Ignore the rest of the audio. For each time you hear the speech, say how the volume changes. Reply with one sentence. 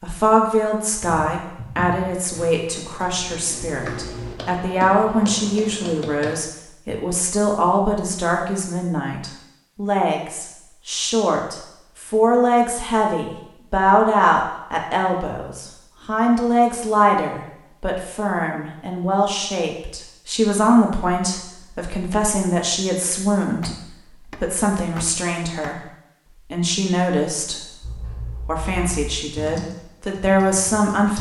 You can hear the speech from 0.0 to 23.8 s, at a steady volume; briefly from 24.4 to 25.8 s; briefly from 26.5 to 27.6 s; and briefly from 28.4 to 31.1 s.